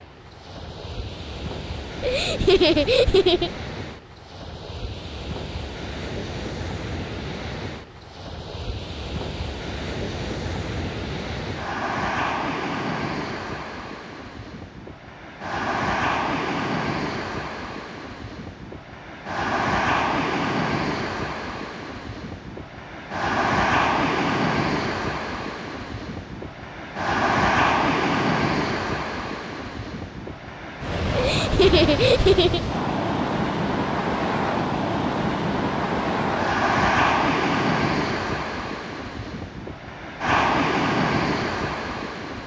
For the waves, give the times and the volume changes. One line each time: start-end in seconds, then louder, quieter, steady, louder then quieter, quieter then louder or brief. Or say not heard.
0.0-42.4 louder.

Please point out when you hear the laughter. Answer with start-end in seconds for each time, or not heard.
2.0-3.5, 31.1-32.6.